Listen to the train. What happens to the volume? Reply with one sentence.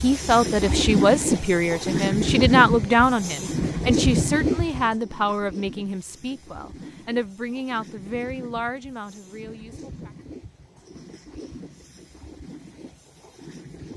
The volume of the train goes down.